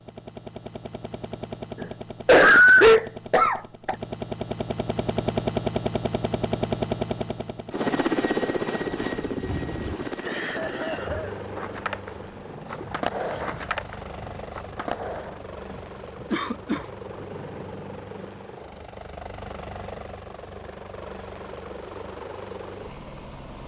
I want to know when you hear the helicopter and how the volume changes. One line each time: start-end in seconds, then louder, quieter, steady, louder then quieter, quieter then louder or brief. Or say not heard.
0.0-23.6 louder then quieter.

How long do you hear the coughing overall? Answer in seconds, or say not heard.
4 s.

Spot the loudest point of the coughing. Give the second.
3 s.